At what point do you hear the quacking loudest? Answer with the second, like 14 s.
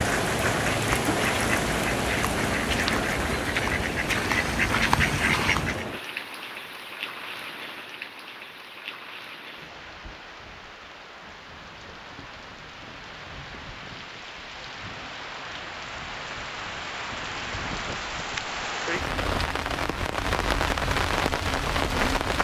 5 s.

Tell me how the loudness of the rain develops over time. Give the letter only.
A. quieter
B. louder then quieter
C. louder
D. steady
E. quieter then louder
E.